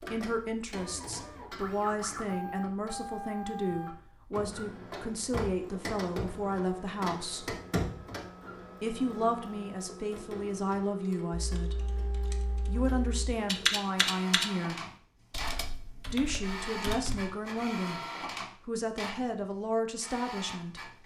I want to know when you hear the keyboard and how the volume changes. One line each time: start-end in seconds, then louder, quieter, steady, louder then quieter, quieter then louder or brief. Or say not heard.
11.4-17.4 louder then quieter.